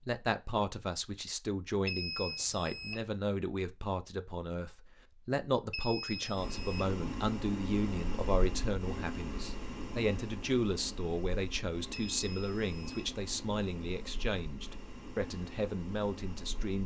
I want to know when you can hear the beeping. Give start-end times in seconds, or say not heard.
1.9-3.0, 5.7-6.9, 11.9-13.1.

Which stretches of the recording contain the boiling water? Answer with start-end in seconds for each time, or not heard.
6.3-16.8.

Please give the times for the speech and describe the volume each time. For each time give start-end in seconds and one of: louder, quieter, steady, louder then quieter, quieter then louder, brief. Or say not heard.
0.1-16.8 steady.